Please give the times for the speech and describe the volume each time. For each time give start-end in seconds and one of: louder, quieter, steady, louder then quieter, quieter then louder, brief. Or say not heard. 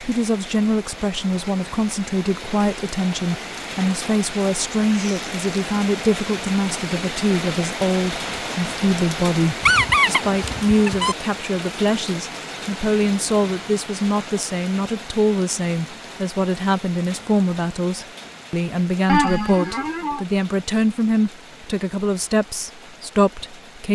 0.0-23.9 steady.